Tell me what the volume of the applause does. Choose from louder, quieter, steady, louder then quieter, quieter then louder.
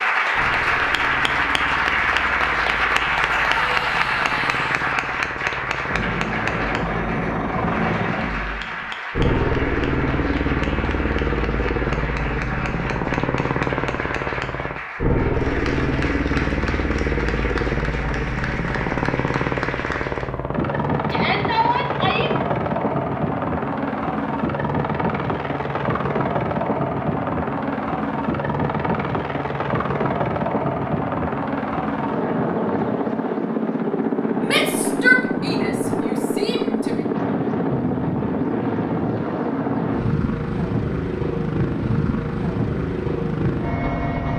quieter.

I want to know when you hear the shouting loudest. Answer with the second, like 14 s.
35 s.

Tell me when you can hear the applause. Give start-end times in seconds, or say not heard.
0.0-20.3.